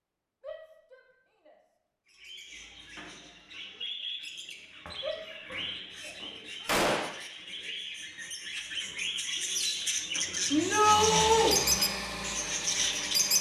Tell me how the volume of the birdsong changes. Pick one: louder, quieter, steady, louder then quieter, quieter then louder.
louder.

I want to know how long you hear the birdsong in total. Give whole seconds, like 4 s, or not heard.
11 s.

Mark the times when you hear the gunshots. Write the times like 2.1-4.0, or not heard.
6.7-7.2.